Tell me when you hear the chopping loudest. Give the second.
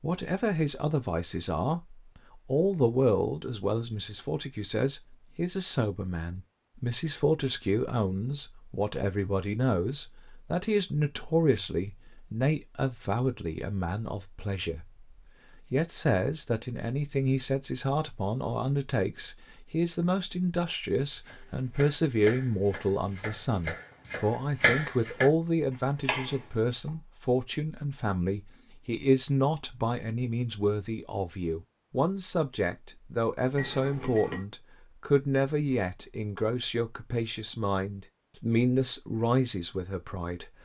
25 s.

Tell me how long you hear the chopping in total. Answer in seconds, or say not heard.
5 s.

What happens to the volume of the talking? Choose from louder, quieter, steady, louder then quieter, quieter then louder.
steady.